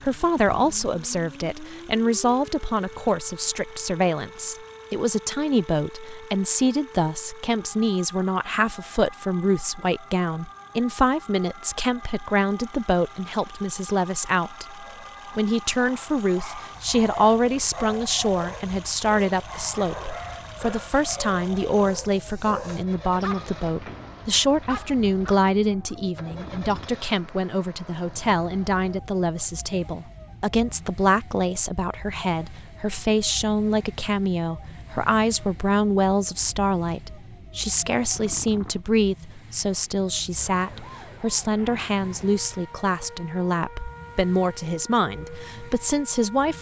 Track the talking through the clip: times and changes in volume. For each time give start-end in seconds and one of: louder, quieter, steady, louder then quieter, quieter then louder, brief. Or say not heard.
0.1-46.5 steady.